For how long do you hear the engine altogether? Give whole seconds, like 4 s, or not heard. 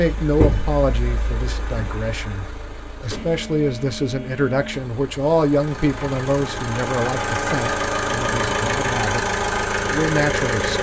11 s.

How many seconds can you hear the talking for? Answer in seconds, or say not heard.
11 s.